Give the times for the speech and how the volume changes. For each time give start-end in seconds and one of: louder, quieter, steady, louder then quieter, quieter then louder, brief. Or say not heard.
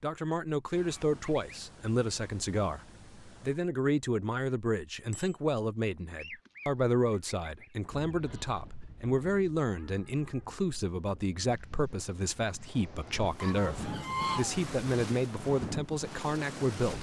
0.0-16.9 steady.